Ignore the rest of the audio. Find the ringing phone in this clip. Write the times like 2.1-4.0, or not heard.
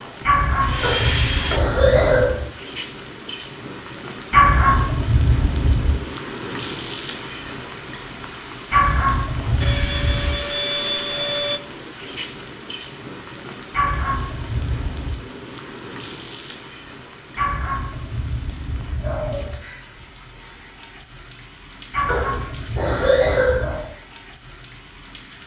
not heard.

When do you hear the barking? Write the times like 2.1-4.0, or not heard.
0.2-2.5, 4.3-6.0, 8.7-10.4, 13.7-15.2, 17.4-19.6, 21.9-23.9.